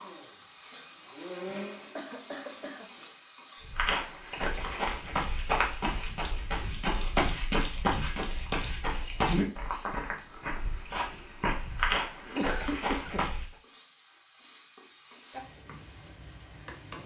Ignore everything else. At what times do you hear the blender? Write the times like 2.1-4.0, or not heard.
0.0-2.8.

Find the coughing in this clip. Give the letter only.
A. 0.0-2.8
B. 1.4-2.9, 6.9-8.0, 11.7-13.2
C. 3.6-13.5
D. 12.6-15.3
B.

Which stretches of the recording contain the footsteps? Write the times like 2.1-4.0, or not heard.
3.6-13.5.